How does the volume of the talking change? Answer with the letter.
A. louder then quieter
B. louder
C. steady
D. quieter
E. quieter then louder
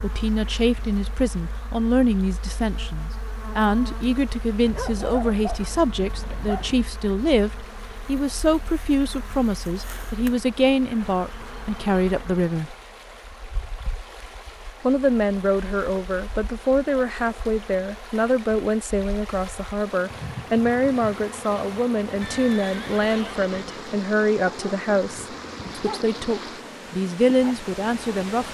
C.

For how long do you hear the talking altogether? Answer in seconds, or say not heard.
26 s.